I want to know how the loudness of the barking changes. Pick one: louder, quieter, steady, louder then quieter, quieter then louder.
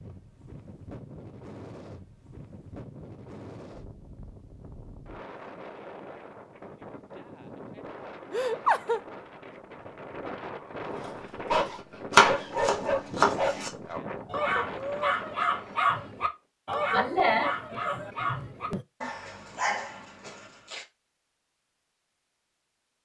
quieter.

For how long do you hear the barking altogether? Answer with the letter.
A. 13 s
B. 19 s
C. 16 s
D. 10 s
D.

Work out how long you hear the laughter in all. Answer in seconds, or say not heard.
3 s.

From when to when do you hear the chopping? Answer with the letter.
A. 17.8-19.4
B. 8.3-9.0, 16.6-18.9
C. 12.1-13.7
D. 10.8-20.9
C.